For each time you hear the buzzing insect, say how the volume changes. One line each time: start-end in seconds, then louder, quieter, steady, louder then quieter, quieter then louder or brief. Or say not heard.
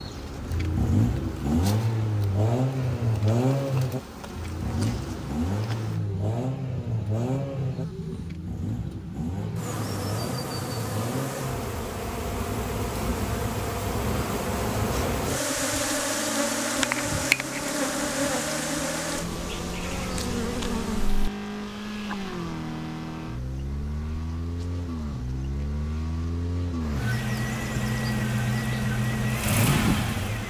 0.0-30.4 louder then quieter.